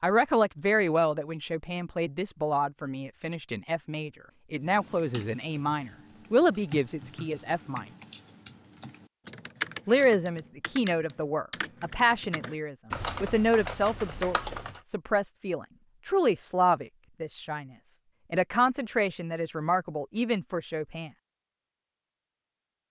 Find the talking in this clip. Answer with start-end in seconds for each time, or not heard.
0.0-7.8, 9.8-17.7, 18.3-21.1.